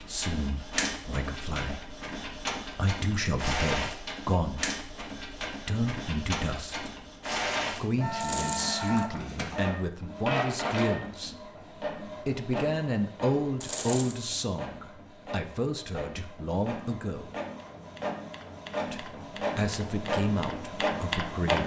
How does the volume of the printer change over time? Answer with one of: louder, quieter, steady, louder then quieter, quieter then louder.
quieter then louder.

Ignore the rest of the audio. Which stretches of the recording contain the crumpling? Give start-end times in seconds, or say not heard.
8.2-9.1, 13.6-14.3.